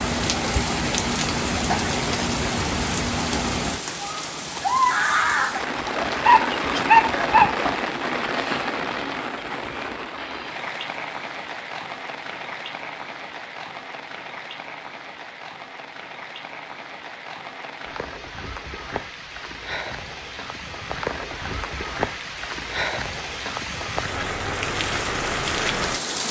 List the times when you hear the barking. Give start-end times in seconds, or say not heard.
5.8-7.7.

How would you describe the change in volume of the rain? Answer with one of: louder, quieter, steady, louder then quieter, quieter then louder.
quieter then louder.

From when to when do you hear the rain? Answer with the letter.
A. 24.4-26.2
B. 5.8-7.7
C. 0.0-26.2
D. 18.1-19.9
C.